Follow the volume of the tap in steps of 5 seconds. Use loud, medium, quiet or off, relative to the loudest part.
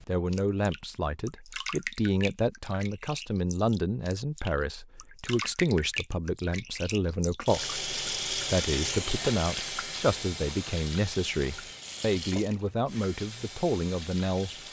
medium, loud, medium.